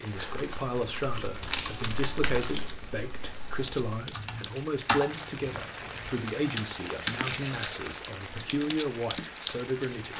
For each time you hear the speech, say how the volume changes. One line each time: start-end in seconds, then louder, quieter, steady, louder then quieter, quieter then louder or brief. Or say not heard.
0.0-10.1 steady.